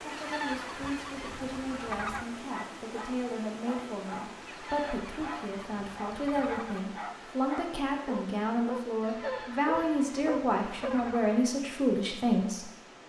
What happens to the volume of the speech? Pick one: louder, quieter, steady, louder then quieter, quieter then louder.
louder.